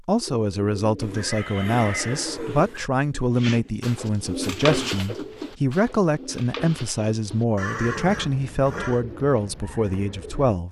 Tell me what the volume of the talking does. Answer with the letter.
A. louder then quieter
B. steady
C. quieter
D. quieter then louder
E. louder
B.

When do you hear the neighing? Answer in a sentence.
You can hear the neighing from 0.9 to 2.9 s and from 7.5 to 9.1 s.